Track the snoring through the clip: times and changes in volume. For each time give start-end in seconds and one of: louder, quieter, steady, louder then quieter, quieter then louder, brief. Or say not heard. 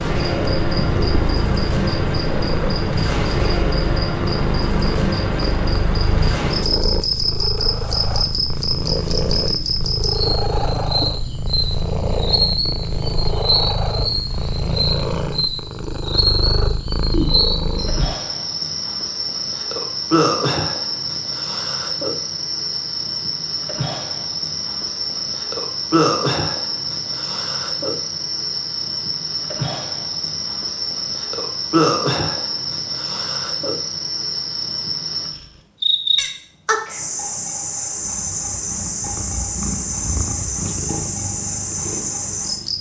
not heard.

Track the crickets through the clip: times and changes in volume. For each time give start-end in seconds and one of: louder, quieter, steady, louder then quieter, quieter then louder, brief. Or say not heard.
0.0-42.7 steady.